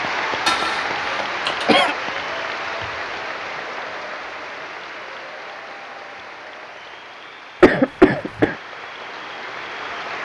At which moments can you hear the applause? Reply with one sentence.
You can hear the applause from 0.0 to 10.1 s.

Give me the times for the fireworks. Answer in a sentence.
The fireworks can't be heard in this clip.